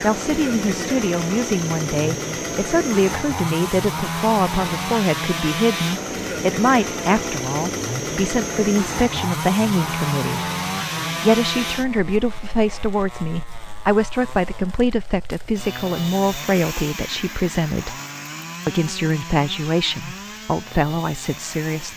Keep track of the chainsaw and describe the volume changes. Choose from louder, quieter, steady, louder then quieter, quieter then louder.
quieter.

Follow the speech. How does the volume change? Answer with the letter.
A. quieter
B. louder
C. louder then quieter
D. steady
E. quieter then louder
D.